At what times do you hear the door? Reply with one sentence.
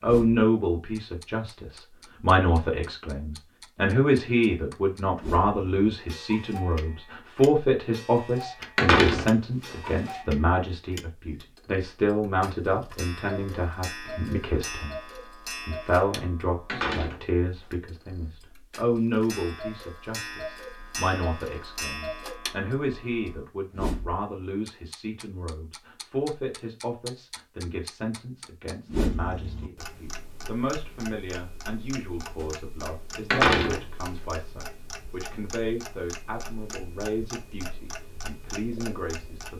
The door can be heard from 8.8 to 10.2 s, from 16.6 to 17.2 s and from 33.3 to 33.9 s.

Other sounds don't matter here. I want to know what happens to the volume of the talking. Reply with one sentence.
The loudness of the talking goes down.